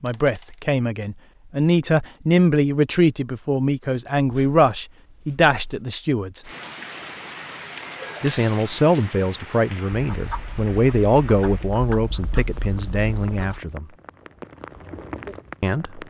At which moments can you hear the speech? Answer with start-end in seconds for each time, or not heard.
0.0-6.4, 8.2-13.8, 15.6-16.0.